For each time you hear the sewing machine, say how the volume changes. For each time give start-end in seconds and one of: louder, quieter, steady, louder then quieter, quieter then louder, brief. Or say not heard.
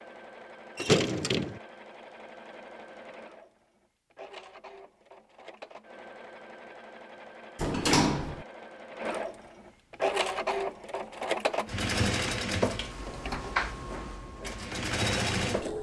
0.0-15.7 louder.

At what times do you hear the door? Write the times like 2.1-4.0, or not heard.
0.8-1.6, 7.5-8.4, 12.9-13.6.